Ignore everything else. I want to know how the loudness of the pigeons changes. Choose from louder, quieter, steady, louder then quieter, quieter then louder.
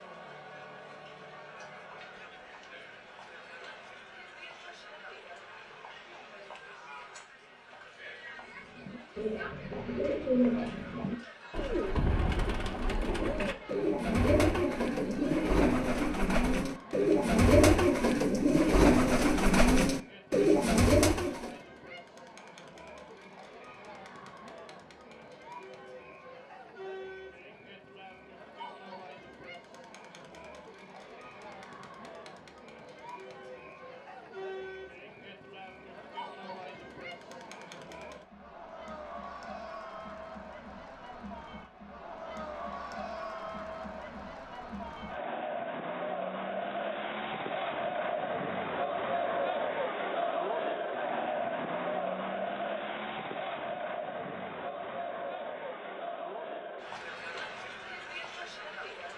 louder.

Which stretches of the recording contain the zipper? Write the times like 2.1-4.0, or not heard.
not heard.